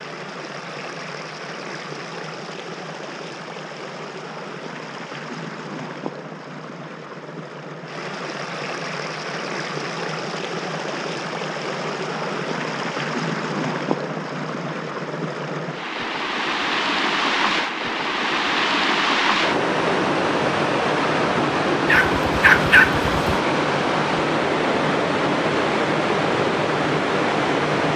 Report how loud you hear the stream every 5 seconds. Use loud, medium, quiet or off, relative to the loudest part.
quiet, medium, medium, loud, loud, loud.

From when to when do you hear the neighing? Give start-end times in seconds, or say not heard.
not heard.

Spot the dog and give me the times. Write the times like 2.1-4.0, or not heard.
21.9-23.4.